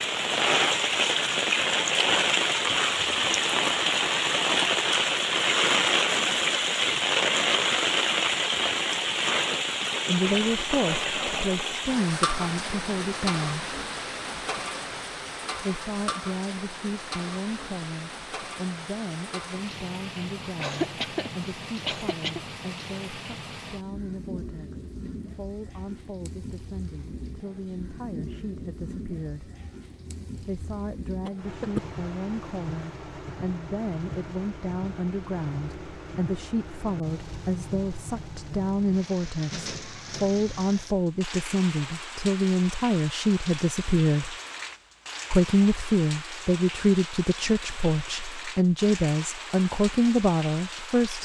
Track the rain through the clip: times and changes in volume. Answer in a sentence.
The rain can be heard from 0.0 to 51.2 s, getting quieter.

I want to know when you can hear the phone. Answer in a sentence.
You can't hear the phone here.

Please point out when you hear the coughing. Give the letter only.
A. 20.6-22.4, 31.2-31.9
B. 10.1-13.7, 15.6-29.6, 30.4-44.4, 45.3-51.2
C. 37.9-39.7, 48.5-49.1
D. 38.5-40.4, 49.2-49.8
A.